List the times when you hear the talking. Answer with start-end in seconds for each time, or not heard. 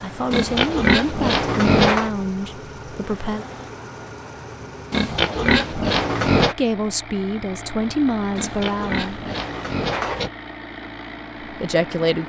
0.0-3.5, 6.4-9.2, 11.4-12.2.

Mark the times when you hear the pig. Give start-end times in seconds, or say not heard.
0.3-2.1, 4.9-6.5, 8.3-10.3.